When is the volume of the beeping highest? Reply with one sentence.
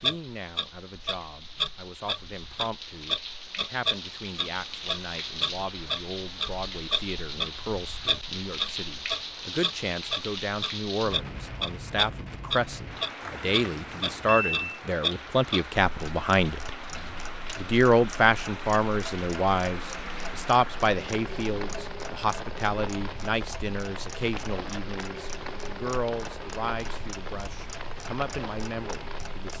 The volume of the beeping peaks at 14 seconds.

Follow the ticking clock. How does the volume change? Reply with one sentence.
The loudness of the ticking clock goes down.